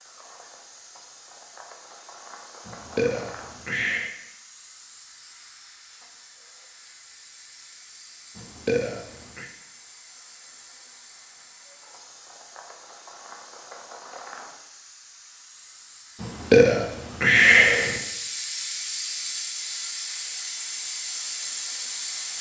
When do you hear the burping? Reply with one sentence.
The burping can be heard from 2.6 to 4.1 s, from 8.3 to 9.5 s and from 16.2 to 18.0 s.